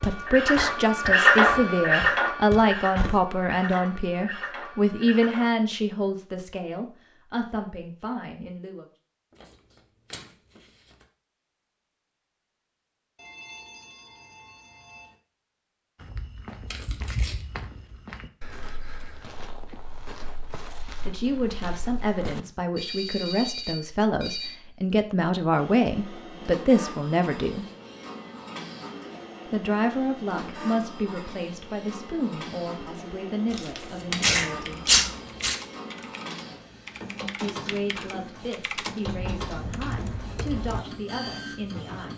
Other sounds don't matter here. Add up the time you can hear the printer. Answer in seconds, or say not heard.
22 s.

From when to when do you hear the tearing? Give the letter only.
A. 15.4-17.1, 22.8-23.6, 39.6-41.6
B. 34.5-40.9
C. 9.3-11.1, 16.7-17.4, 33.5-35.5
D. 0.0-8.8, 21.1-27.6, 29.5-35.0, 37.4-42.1
C.